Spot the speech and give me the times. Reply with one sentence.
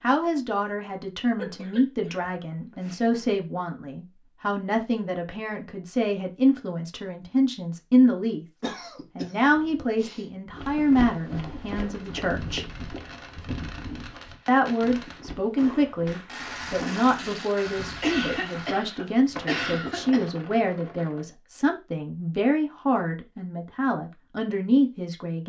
You can hear the speech from 0.0 to 8.4 s, from 9.2 to 12.7 s and from 14.4 to 25.4 s.